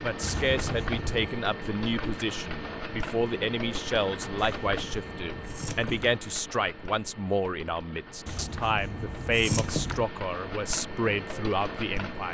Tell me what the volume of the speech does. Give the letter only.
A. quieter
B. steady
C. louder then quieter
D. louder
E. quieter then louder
B.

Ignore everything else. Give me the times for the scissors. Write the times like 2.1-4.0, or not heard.
0.2-1.4, 4.3-6.2, 8.2-10.1.